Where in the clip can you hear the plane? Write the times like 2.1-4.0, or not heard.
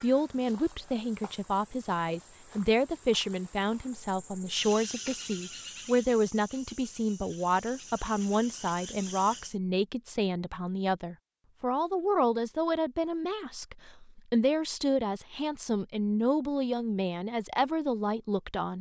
not heard.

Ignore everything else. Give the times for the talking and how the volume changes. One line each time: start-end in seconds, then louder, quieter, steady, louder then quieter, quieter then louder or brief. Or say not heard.
0.0-18.7 steady.